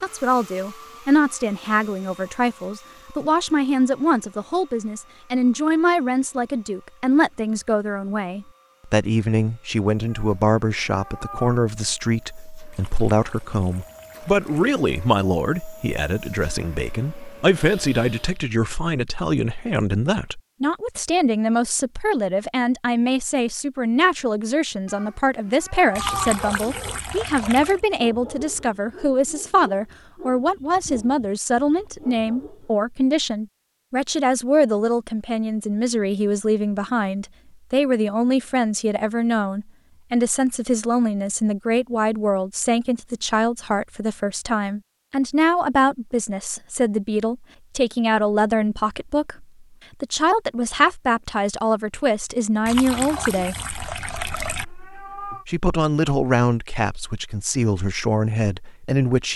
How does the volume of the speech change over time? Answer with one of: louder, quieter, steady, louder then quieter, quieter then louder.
steady.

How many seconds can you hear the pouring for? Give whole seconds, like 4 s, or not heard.
6 s.